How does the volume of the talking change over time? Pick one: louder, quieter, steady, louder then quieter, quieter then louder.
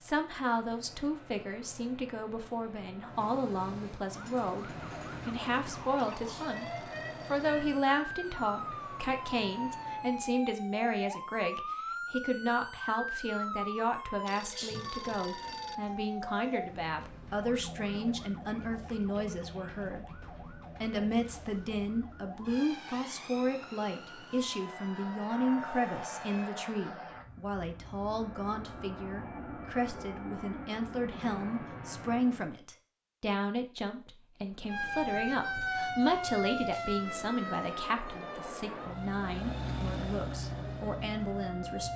steady.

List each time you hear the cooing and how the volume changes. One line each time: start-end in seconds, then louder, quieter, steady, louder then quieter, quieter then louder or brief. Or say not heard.
not heard.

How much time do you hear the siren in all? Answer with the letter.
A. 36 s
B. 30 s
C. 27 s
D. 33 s
B.